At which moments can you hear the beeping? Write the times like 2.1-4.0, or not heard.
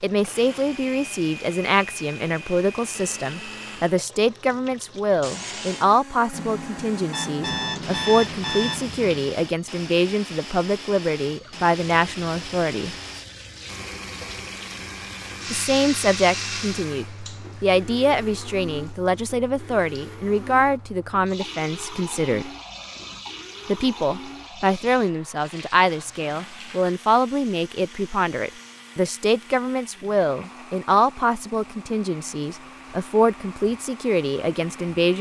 6.3-8.9.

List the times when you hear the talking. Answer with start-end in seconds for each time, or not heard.
0.0-12.9, 15.5-22.5, 23.6-35.1.